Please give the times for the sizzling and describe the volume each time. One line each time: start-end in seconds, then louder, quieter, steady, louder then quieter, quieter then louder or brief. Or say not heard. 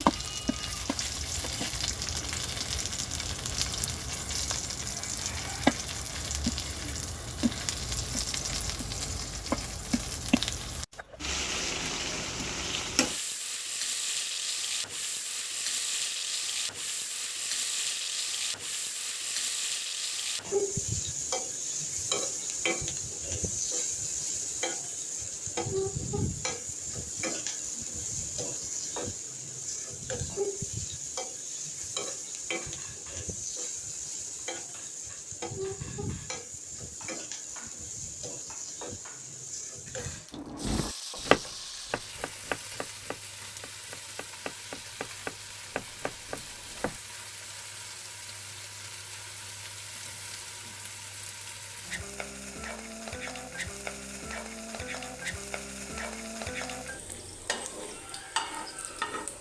0.0-59.3 quieter.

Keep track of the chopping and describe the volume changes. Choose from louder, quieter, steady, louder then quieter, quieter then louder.
quieter then louder.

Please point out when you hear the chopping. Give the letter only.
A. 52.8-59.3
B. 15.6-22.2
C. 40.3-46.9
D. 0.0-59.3
C.